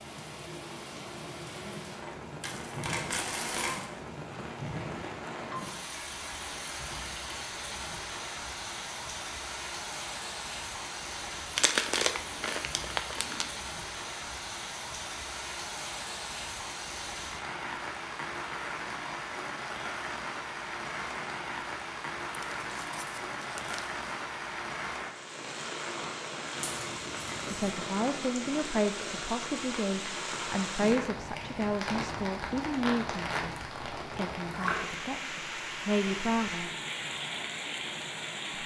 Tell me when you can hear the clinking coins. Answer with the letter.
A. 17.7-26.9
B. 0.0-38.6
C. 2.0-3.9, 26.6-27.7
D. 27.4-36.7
C.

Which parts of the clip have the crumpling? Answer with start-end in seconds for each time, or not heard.
11.6-13.5, 22.3-23.9.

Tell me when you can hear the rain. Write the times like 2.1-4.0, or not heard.
0.0-38.6.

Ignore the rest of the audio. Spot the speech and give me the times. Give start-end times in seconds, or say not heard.
27.4-36.7.